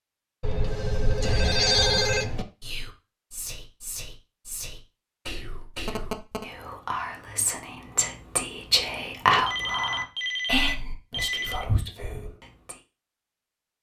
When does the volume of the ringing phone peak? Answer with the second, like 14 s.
2 s.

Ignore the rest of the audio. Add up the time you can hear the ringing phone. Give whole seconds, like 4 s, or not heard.
5 s.